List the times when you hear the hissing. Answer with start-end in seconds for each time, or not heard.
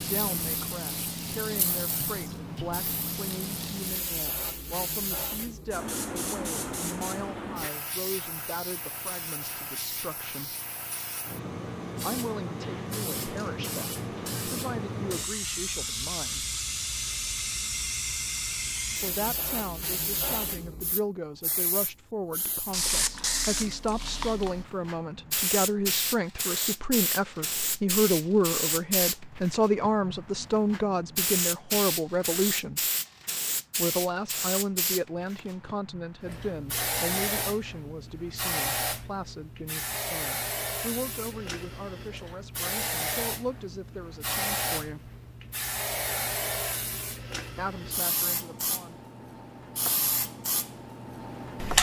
0.0-51.7.